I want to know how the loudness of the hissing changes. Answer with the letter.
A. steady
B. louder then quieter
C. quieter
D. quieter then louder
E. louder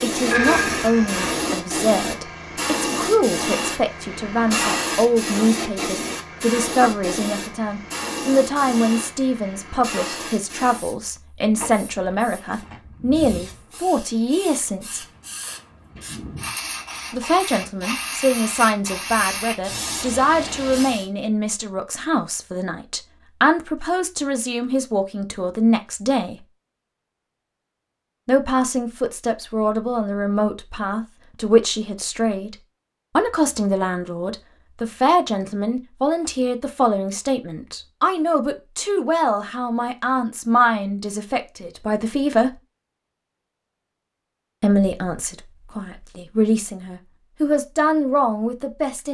D.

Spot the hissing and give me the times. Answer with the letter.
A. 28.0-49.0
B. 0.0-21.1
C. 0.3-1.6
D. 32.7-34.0
B.